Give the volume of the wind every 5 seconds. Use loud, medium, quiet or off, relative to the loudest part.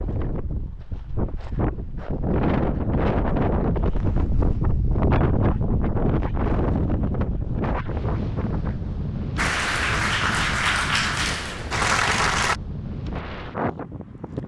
loud, loud, medium.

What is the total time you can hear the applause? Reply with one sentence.
You can hear the applause for 3 seconds altogether.